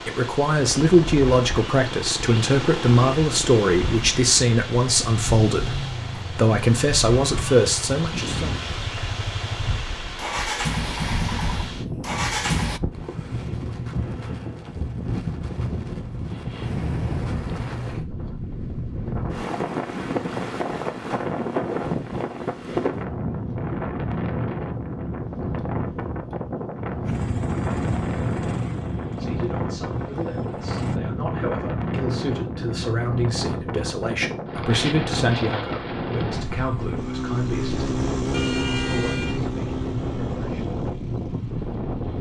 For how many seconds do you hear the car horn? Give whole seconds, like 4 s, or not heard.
3 s.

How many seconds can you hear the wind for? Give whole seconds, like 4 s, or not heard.
42 s.